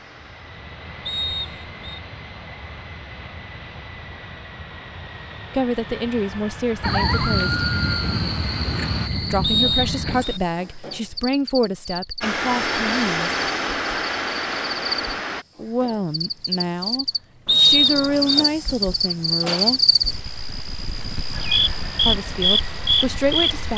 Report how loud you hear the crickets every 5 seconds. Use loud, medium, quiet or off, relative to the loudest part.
off, loud, medium, loud, loud.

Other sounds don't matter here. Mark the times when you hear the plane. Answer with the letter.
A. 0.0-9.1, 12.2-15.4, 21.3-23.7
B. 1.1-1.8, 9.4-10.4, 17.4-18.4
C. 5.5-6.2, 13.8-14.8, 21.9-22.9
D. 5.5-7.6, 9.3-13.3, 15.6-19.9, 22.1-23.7
A.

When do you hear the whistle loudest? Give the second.
18 s.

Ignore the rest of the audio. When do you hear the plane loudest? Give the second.
13 s.